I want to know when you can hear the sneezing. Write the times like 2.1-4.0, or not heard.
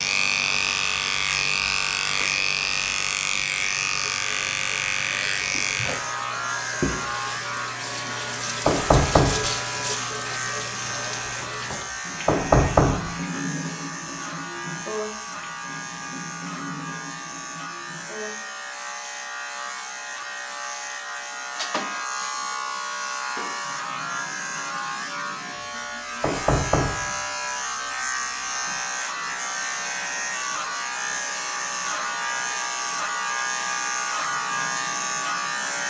not heard.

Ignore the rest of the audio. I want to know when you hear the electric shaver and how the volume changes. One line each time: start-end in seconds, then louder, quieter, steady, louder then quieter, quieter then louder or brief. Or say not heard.
0.0-35.8 quieter then louder.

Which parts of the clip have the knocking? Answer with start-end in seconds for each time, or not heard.
8.7-9.6, 12.2-13.2, 26.2-27.1.